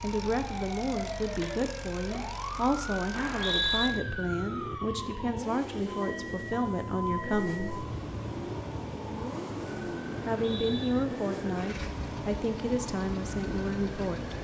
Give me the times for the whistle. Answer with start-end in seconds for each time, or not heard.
3.1-3.9, 10.3-10.9.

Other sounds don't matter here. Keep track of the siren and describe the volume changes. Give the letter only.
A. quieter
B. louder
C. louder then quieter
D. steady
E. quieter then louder
D.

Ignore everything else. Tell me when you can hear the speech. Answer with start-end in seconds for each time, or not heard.
0.0-7.8, 10.2-14.3.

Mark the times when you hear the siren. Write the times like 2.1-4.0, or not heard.
0.0-14.3.